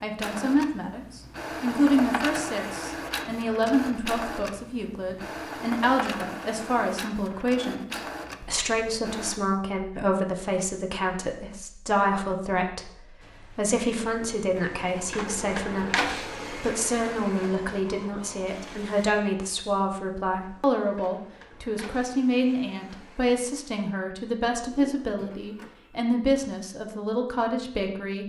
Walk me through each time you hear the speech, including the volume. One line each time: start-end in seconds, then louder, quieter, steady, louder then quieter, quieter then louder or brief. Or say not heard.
0.0-28.2 steady.